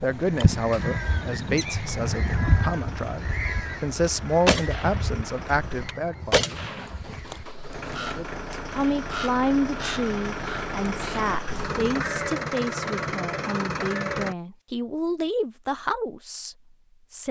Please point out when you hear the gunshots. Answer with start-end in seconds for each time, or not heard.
4.5-6.8.